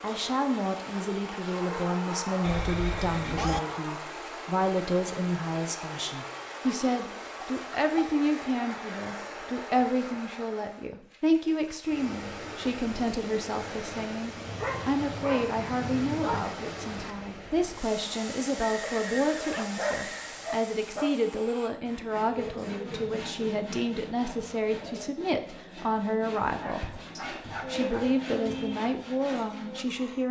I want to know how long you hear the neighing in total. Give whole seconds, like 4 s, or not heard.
3 s.